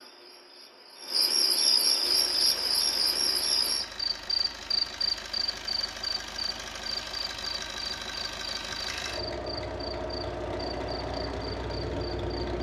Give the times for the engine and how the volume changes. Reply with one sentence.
You can hear the engine from 2.0 to 12.5 s, getting louder.